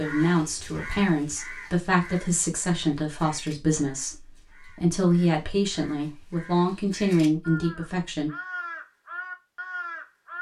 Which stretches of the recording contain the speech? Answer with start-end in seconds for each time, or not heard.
0.0-8.3.